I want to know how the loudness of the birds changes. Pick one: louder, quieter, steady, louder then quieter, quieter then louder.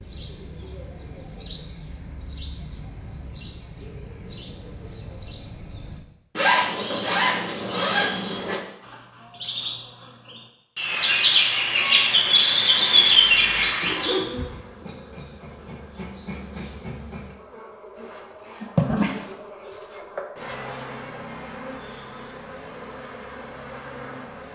louder.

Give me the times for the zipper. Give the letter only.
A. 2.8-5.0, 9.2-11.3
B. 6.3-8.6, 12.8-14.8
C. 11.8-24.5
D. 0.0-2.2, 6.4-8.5
B.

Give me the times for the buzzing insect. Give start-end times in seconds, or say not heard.
11.8-24.5.